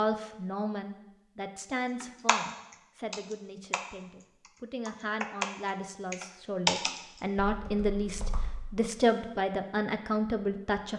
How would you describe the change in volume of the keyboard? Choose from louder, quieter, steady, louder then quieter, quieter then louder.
louder then quieter.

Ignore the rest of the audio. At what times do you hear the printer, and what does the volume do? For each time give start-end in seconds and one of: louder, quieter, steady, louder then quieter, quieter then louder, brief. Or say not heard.
not heard.